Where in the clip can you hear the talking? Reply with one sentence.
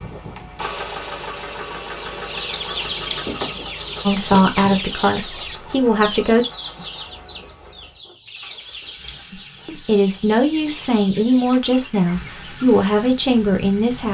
You can hear the talking from 4.0 to 6.5 s and from 9.3 to 14.0 s.